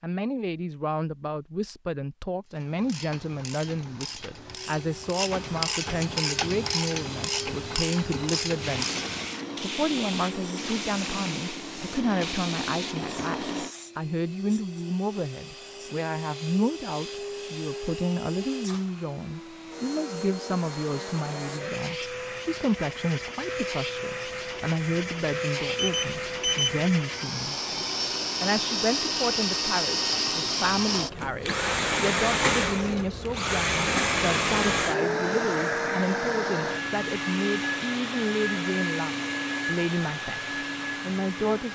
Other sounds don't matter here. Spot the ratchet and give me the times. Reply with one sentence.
The ratchet can be heard from 2.5 to 9.2 s.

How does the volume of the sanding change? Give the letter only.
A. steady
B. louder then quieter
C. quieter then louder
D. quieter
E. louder
A.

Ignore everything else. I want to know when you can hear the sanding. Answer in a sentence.
You can hear the sanding from 8.6 to 13.8 s.